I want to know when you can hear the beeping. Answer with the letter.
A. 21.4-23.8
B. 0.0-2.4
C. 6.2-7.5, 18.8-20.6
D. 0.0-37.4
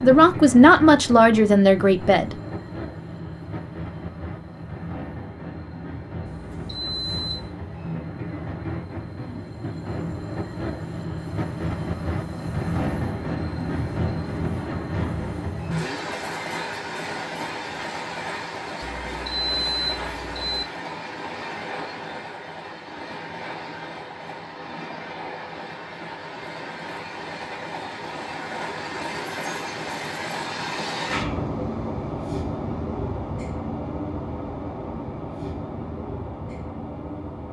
C.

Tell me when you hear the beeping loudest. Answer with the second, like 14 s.
20 s.